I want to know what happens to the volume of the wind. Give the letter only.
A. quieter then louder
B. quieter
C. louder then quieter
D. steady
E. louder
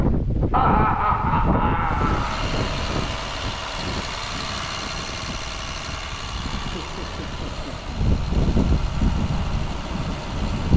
A.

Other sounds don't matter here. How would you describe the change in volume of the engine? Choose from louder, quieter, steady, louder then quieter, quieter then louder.
quieter.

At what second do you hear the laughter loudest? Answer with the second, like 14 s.
1 s.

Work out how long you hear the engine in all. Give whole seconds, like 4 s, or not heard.
9 s.